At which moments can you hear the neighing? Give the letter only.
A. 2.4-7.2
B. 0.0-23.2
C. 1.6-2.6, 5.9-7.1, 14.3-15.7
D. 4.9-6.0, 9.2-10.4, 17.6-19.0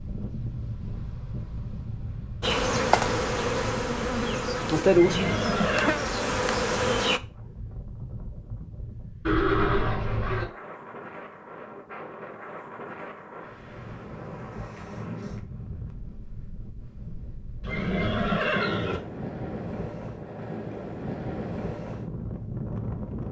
D.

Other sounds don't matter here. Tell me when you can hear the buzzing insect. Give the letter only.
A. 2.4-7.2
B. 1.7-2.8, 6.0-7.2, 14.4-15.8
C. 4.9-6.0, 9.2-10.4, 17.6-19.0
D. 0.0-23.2
A.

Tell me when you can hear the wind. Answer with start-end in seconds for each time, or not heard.
0.0-23.2.